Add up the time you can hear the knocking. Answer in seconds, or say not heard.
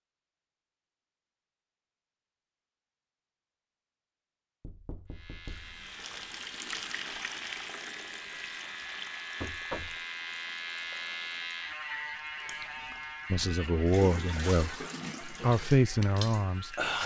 2 s.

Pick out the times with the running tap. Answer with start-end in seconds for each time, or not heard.
5.5-17.0.